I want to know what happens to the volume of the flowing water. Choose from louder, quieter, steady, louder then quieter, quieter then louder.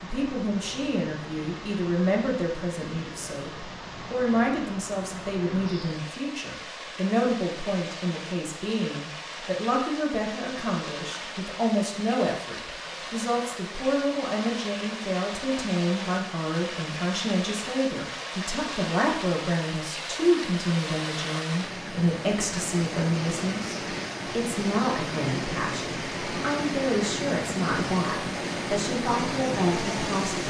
louder.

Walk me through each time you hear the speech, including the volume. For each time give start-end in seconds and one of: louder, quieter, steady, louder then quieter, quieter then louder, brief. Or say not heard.
0.0-30.4 steady.